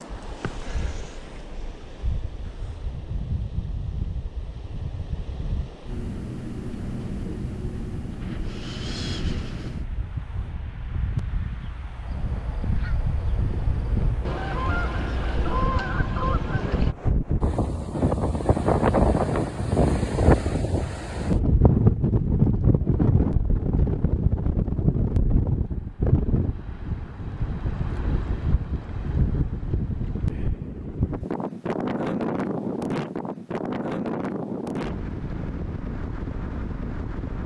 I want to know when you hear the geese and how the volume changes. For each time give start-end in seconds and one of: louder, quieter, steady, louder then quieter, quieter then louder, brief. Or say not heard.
12.1-16.9 louder.